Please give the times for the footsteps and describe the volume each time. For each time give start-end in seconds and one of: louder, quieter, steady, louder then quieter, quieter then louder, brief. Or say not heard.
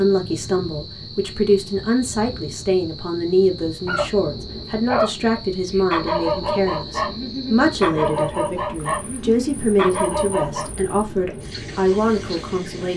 not heard.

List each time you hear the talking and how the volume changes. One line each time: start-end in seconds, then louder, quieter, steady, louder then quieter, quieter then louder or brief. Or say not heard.
0.0-12.9 steady.